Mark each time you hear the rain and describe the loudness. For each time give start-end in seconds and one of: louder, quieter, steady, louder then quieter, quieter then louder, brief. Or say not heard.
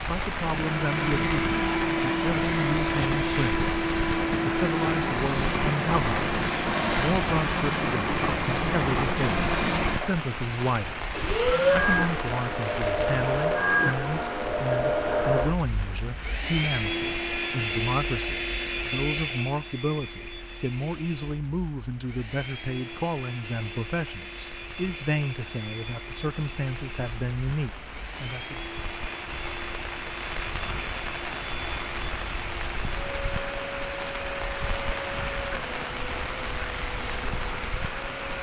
0.0-38.3 quieter then louder.